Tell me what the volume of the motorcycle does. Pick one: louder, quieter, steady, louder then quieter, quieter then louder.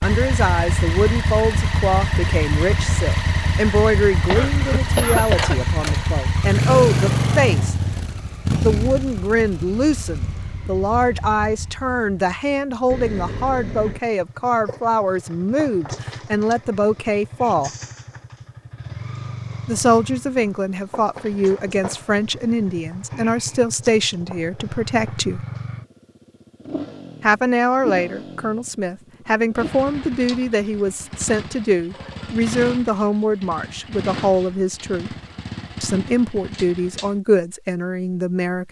quieter.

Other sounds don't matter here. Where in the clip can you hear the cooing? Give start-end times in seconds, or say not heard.
not heard.